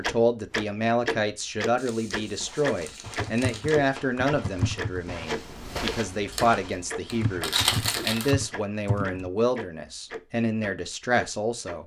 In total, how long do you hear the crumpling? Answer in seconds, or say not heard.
4 s.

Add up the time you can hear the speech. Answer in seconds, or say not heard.
12 s.